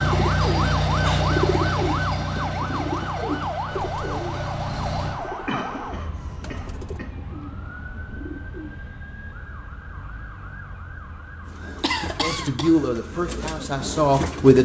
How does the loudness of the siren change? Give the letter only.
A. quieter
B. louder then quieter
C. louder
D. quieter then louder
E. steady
A.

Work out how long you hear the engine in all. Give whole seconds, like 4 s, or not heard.
5 s.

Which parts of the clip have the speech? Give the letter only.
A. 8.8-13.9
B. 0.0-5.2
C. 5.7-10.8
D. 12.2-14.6
D.